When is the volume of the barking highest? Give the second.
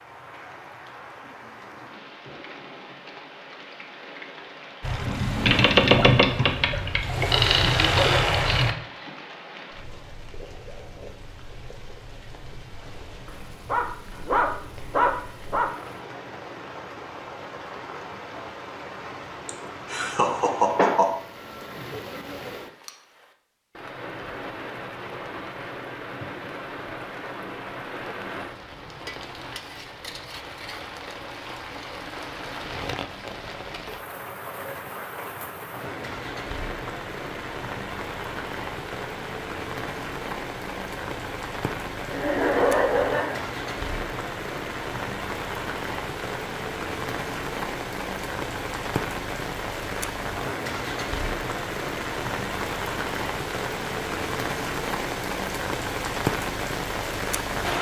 15 s.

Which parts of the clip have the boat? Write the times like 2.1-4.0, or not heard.
4.8-8.8.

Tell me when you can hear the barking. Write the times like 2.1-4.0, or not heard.
13.2-15.7.